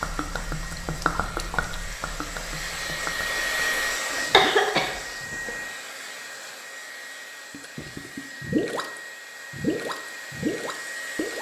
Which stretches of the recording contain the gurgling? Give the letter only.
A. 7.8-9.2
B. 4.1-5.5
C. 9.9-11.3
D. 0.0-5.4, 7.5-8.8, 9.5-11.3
D.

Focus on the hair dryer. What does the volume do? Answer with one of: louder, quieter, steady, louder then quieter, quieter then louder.
louder then quieter.